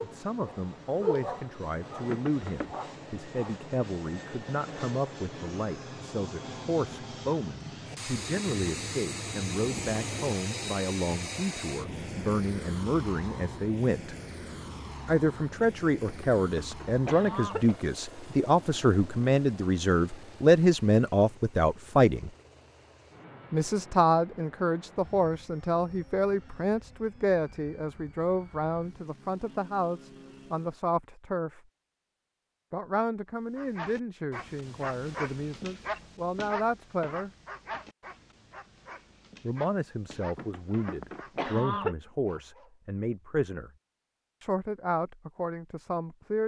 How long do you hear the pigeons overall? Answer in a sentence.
You can't hear the pigeons here.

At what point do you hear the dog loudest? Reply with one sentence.
The loudest moment of the dog is at 1 second.